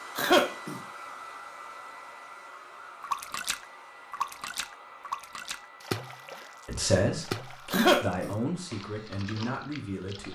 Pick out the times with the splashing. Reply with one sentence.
You can hear the splashing from 3.0 to 10.3 s.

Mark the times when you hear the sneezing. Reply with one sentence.
You can hear the sneezing from 0.1 to 0.8 s and from 7.7 to 8.3 s.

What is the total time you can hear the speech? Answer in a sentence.
The speech can be heard for 4 seconds in total.